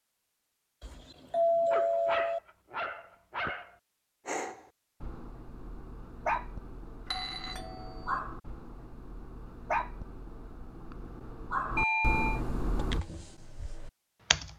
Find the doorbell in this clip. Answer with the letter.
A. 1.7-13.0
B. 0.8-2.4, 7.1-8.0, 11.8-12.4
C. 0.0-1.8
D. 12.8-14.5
B.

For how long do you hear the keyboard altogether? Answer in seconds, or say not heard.
2 s.